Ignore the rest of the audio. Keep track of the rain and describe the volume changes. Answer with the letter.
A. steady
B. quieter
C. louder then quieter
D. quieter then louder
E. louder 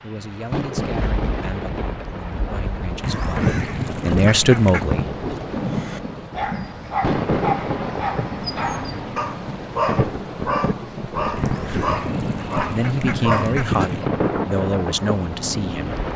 A.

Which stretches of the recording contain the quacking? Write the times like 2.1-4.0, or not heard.
3.0-4.9, 11.3-14.1.